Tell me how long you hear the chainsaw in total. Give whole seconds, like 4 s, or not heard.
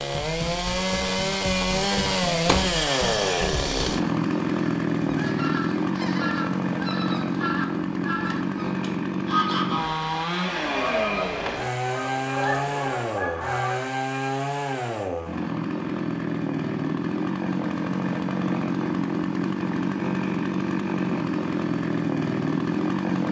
23 s.